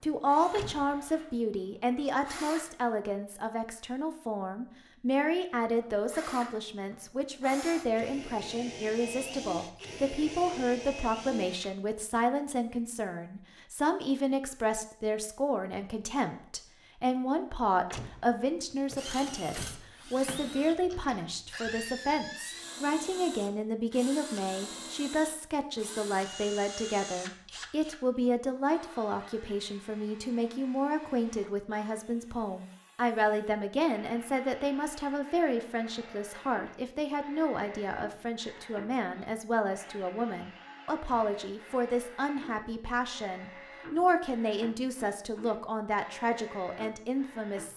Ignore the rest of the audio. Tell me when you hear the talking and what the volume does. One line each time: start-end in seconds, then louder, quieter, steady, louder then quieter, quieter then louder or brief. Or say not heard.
0.0-47.7 steady.